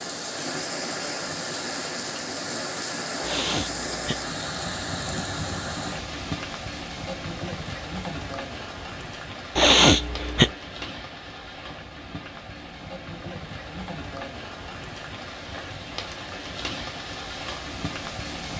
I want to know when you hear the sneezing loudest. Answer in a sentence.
The loudest moment of the sneezing is at 10 seconds.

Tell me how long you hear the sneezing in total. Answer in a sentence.
The sneezing can be heard for 2 seconds in total.